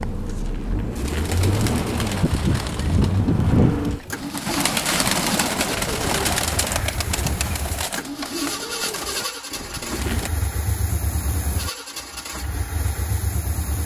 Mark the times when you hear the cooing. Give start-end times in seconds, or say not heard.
0.0-10.3.